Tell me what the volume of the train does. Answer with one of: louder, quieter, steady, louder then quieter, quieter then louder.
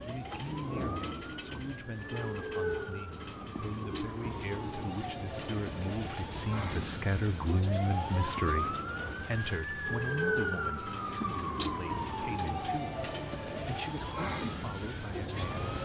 steady.